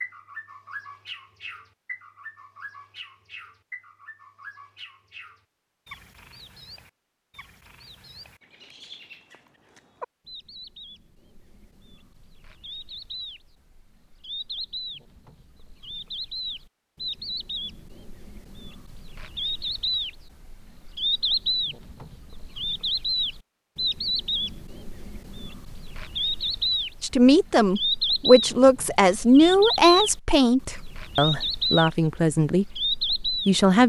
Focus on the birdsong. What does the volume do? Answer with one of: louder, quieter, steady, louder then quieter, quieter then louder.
louder.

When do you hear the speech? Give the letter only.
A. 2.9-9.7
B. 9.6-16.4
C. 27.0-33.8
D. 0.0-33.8
C.